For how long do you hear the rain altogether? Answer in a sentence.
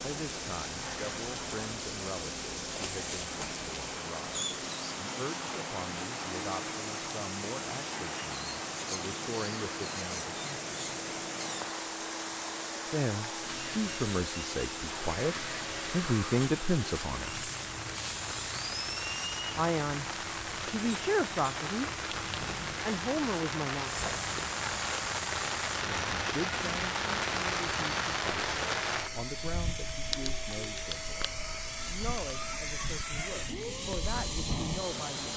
The rain can be heard for 35 seconds in total.